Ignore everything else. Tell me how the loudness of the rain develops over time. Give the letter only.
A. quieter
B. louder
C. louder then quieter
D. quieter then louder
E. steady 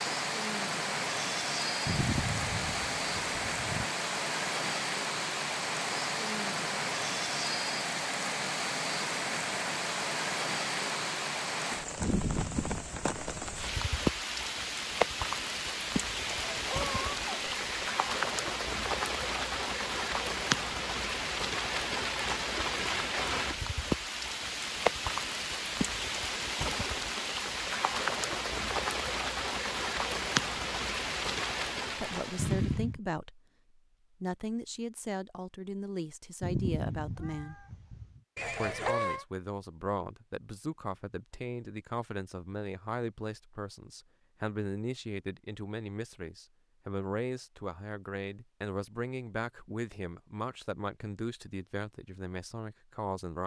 E.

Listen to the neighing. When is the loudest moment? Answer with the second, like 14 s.
39 s.